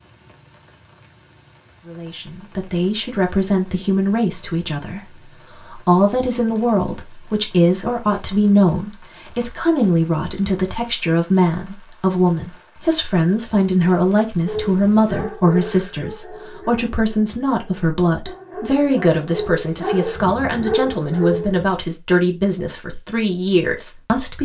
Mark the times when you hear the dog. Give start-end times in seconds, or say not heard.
14.4-21.7.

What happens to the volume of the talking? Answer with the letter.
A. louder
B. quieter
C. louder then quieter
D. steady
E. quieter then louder
D.